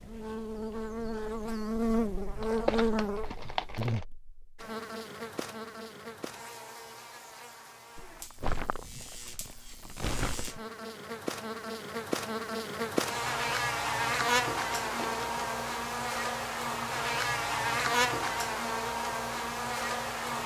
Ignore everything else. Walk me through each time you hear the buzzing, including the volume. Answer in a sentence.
The buzzing can be heard from 0.0 to 20.4 s, getting quieter then louder.